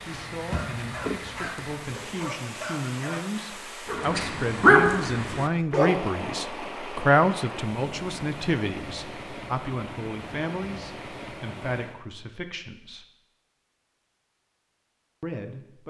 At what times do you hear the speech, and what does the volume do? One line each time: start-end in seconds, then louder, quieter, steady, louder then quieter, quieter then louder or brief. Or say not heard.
0.1-13.1 louder then quieter
15.2-15.8 brief.